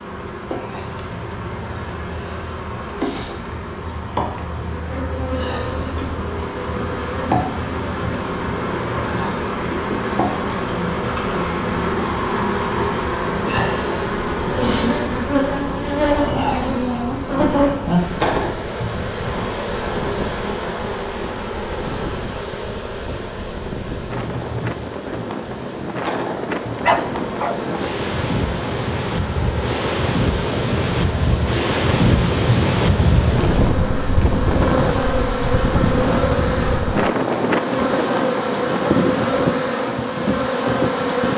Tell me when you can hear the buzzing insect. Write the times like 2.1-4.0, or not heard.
0.0-41.3.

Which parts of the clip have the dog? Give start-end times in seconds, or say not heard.
26.8-27.6.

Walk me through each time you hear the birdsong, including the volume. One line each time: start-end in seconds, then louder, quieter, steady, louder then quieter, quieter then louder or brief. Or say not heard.
not heard.